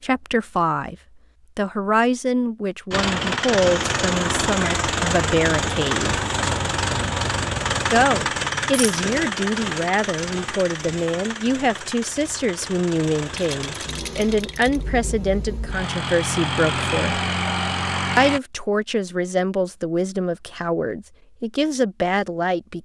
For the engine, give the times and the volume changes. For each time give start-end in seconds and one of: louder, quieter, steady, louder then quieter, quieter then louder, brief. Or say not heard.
2.9-18.4 quieter then louder.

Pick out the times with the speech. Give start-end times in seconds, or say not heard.
0.0-0.9, 1.6-6.2, 7.9-17.2, 18.1-22.7.